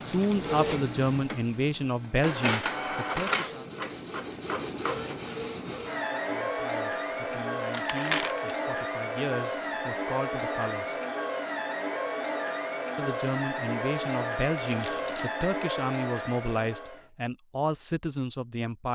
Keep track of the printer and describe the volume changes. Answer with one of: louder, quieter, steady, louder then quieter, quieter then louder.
steady.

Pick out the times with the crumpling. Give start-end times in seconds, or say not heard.
0.1-0.8, 7.7-8.6, 14.6-15.3.